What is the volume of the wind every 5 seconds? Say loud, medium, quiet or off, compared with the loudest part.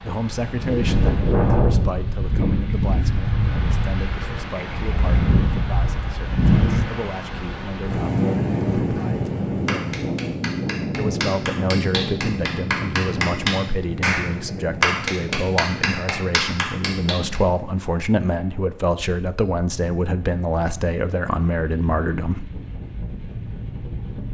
loud, loud, medium, quiet, quiet.